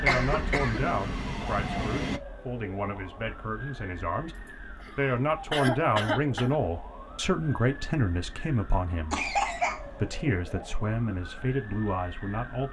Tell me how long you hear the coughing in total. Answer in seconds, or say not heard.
4 s.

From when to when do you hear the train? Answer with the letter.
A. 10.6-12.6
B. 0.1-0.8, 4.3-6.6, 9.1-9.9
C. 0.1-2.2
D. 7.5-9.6
C.